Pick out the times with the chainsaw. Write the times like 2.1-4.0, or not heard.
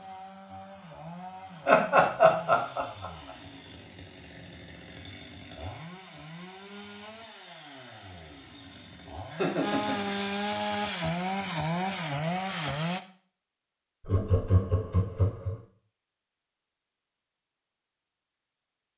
0.0-13.0.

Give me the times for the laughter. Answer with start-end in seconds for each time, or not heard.
1.6-3.0, 9.3-10.3, 14.0-15.6.